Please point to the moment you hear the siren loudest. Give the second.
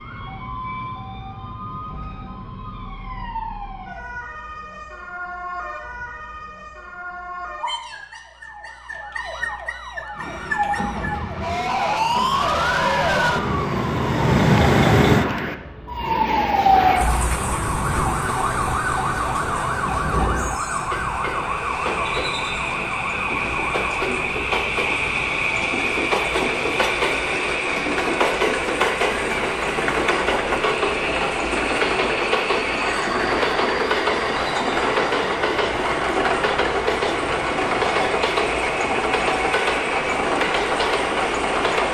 15 s.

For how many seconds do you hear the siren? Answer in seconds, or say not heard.
42 s.